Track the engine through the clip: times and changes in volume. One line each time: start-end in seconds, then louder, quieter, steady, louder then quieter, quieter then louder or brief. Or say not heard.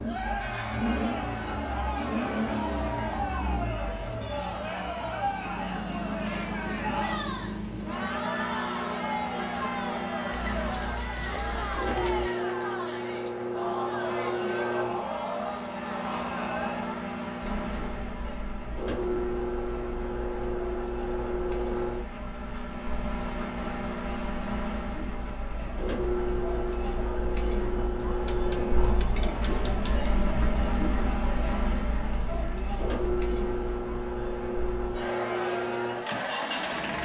0.0-36.9 steady.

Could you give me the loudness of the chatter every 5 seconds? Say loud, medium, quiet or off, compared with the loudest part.
loud, loud, loud, loud, medium, loud, loud, loud.